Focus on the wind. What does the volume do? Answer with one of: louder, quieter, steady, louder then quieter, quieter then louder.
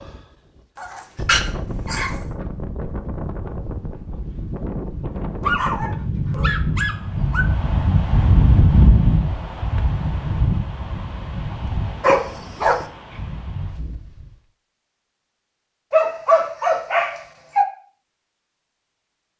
louder then quieter.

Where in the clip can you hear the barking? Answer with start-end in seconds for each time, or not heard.
0.8-2.1, 5.4-7.5, 12.0-12.8, 15.9-17.6.